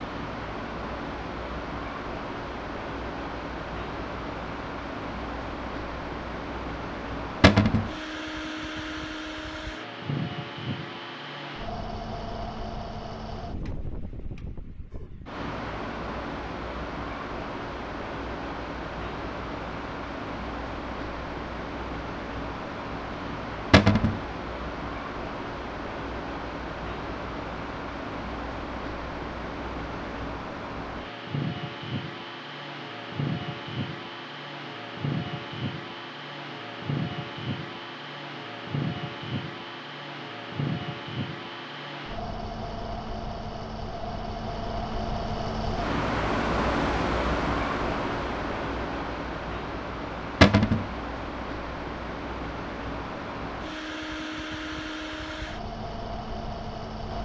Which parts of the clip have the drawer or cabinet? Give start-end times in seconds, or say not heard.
7.4-7.9, 23.7-24.2, 50.4-50.9.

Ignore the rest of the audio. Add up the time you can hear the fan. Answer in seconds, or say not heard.
57 s.